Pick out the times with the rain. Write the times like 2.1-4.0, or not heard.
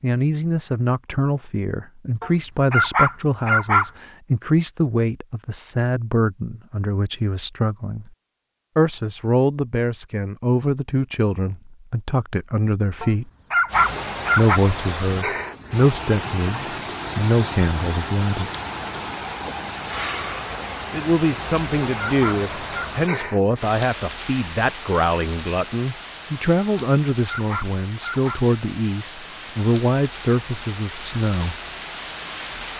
13.7-32.7.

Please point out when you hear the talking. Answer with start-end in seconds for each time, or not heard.
0.0-8.1, 8.8-13.3, 14.3-18.5, 20.9-31.6.